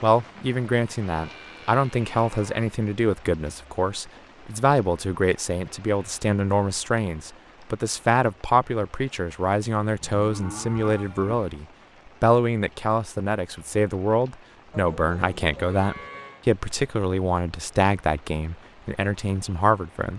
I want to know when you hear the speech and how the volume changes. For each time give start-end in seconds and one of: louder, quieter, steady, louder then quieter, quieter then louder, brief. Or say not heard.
0.0-20.1 steady.